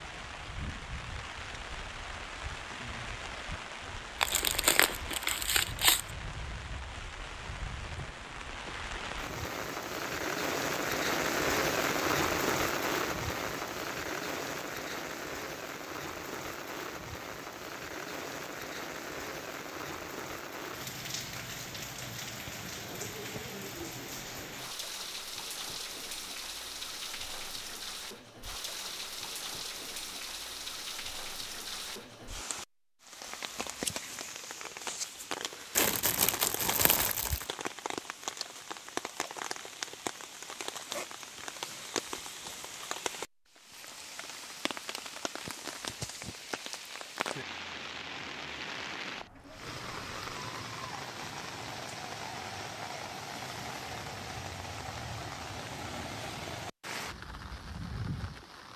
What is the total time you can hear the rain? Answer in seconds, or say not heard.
59 s.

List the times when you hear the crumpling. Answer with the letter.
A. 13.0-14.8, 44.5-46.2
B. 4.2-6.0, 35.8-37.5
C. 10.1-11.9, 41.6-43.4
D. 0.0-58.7
B.